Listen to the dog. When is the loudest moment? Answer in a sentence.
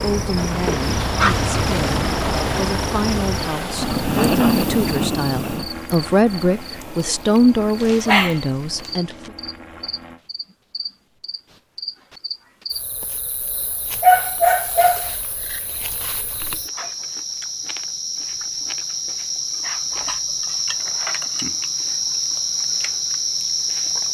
The volume of the dog peaks at 14 seconds.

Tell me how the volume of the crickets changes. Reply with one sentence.
The volume of the crickets goes down, then up.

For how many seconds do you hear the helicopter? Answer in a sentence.
You can hear the helicopter for 10 seconds altogether.